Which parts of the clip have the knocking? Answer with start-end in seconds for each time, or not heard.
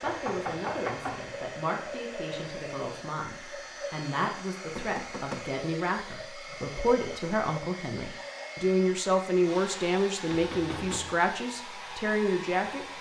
0.0-1.2, 4.8-5.5, 10.2-11.2.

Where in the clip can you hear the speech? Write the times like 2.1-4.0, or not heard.
0.0-12.8.